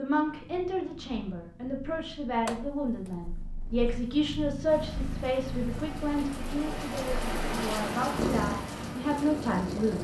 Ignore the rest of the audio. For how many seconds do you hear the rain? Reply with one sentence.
The rain can be heard for 5 seconds in total.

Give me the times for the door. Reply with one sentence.
The door can be heard from 2.5 to 3.2 s.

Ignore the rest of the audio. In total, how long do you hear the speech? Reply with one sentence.
The speech can be heard for 10 seconds in total.